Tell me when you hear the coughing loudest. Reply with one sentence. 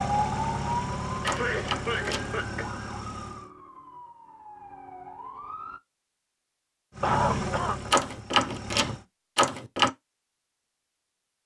The loudest moment of the coughing is at 7 seconds.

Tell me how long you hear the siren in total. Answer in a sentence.
The siren can be heard for 6 seconds in total.